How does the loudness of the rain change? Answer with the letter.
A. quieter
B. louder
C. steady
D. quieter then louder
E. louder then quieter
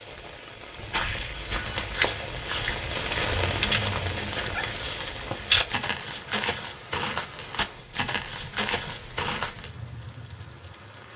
E.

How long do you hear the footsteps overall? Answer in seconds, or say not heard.
9 s.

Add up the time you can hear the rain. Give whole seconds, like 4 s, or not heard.
11 s.